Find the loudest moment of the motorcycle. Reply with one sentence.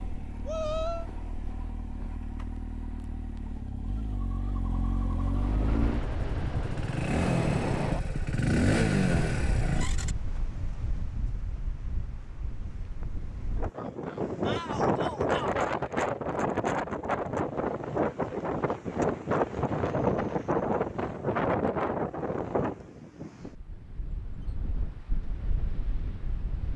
The volume of the motorcycle peaks at 9 seconds.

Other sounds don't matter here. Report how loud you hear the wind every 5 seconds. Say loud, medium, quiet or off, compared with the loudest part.
off, medium, medium, loud, loud, quiet.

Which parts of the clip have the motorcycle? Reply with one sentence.
The motorcycle can be heard from 0.0 to 10.2 s.